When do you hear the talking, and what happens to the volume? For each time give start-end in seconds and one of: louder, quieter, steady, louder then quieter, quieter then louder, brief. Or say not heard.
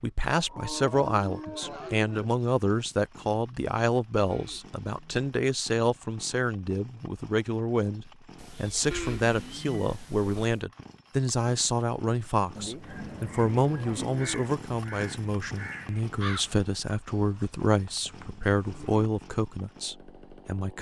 0.0-20.7 steady.